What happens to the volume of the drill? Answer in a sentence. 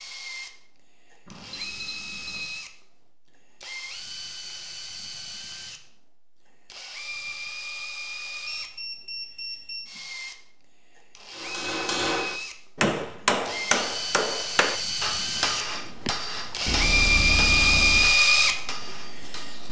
The volume of the drill goes up.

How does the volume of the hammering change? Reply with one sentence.
The loudness of the hammering goes down.